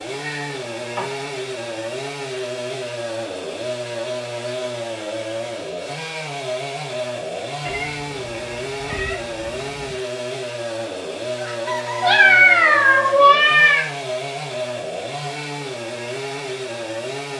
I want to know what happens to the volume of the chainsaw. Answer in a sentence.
The volume of the chainsaw stays about the same.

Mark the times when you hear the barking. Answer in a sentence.
The barking can't be heard in this clip.